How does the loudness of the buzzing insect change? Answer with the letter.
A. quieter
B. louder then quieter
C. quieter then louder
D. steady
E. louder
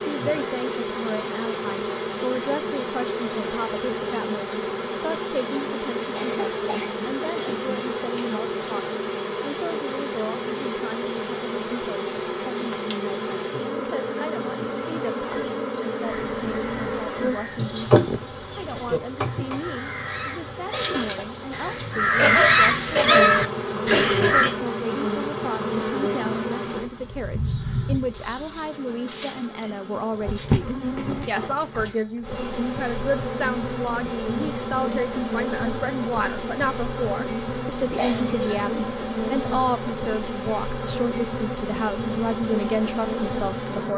D.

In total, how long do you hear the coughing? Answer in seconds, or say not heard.
5 s.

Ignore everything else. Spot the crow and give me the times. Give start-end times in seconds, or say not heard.
16.1-24.5.